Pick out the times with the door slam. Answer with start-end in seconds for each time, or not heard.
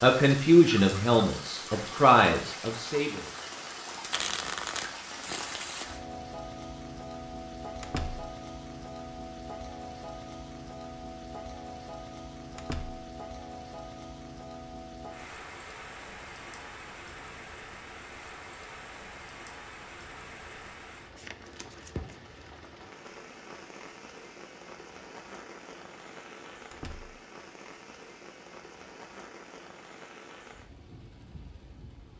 7.8-8.3, 12.6-13.1, 26.7-27.1.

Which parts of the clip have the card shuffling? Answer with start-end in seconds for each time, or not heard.
4.1-5.9, 21.1-22.4.